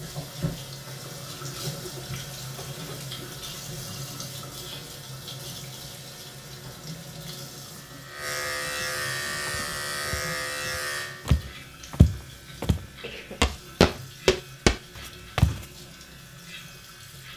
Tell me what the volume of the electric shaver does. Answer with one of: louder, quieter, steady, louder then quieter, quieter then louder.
louder then quieter.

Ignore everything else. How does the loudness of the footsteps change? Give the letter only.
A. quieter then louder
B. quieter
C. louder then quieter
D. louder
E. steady
D.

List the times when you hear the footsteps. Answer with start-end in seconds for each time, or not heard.
9.4-15.7.